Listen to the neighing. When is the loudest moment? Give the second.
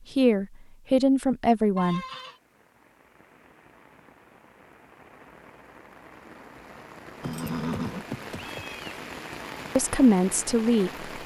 8 s.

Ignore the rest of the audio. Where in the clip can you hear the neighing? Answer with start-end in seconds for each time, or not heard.
1.8-2.4, 7.2-9.0.